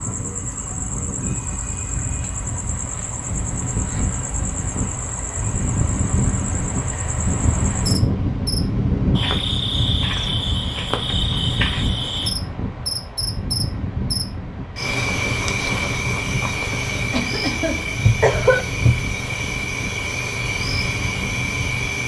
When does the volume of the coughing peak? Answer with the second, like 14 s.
18 s.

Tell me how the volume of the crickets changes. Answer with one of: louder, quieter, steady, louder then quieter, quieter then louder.
louder.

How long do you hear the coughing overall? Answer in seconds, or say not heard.
2 s.